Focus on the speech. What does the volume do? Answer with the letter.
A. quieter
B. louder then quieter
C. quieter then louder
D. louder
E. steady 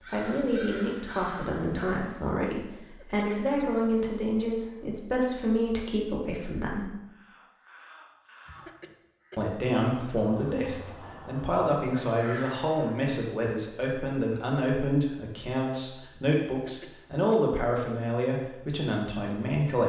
E.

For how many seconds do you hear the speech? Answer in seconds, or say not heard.
17 s.